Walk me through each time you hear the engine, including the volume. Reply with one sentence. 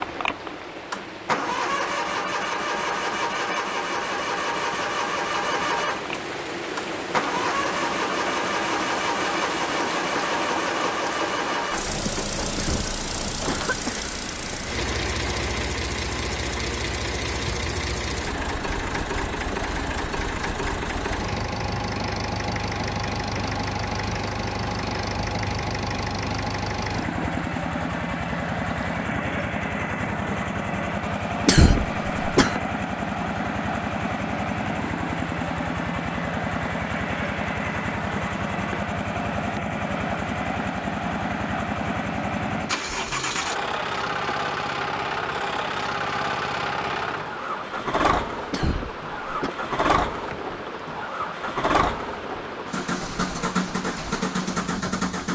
The engine can be heard from 0.0 to 55.2 s, at a steady volume.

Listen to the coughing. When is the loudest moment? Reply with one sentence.
The volume of the coughing peaks at 32 seconds.